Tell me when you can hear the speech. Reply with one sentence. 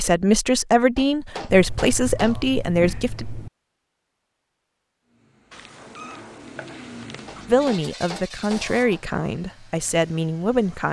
You can hear the speech from 0.0 to 3.2 s and from 7.5 to 10.8 s.